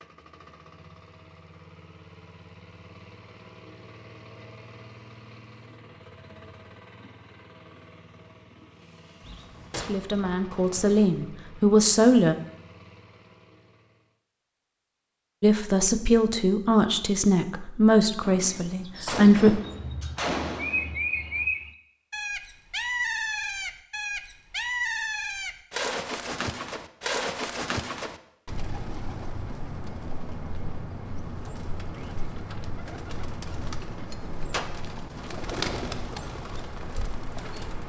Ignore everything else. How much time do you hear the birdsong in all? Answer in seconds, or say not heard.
19 s.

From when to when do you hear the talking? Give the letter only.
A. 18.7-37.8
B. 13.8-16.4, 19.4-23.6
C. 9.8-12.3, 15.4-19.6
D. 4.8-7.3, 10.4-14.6
C.